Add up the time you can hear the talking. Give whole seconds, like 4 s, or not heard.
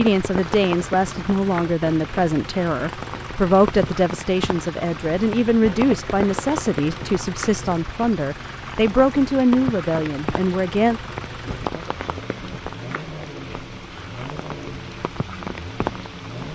11 s.